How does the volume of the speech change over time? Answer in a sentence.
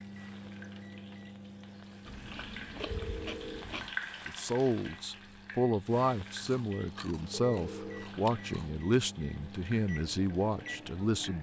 The loudness of the speech stays about the same.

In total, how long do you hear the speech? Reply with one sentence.
You can hear the speech for 7 seconds altogether.